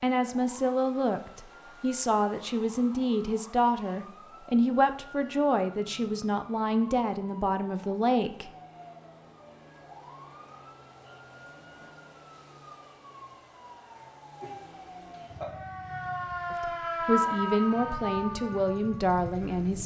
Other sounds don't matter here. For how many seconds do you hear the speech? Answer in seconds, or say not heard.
12 s.